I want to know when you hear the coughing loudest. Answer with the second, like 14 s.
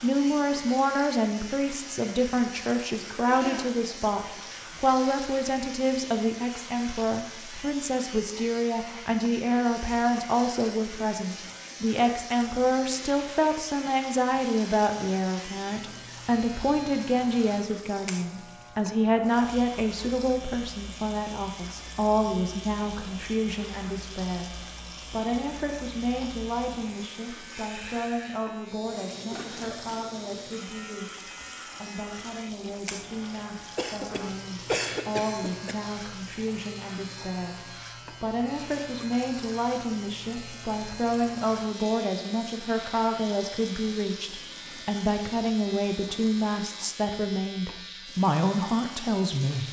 35 s.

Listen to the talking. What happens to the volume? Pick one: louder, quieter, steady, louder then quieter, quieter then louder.
quieter then louder.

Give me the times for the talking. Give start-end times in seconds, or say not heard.
0.0-49.6.